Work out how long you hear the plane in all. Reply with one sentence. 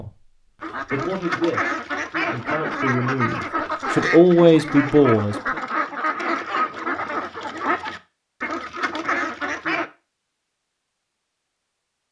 The plane can't be heard in this clip.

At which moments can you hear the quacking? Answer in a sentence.
You can hear the quacking from 0.6 to 9.9 s.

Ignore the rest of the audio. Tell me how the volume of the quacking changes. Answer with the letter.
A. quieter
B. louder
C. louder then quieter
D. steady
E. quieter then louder
D.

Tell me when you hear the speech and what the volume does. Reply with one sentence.
You can hear the speech from 0.0 to 5.5 s, getting louder.